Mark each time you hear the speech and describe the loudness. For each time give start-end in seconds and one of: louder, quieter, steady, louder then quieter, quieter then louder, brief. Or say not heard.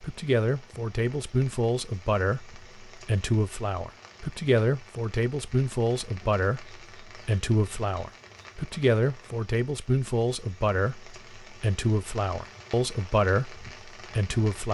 0.0-14.6 steady.